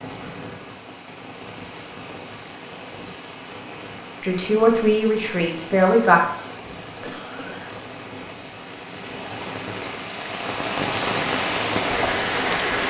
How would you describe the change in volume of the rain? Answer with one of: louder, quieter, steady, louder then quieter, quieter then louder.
louder.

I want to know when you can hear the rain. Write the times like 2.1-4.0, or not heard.
0.0-12.8.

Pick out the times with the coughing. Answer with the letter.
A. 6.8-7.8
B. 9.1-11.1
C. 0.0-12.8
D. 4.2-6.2
A.